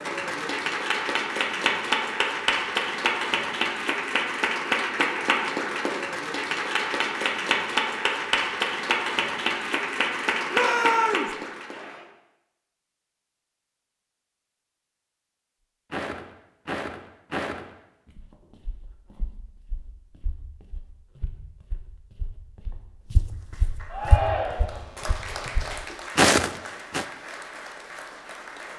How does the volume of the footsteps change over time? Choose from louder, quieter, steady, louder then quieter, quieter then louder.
quieter then louder.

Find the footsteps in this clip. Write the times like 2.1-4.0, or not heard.
15.9-27.1.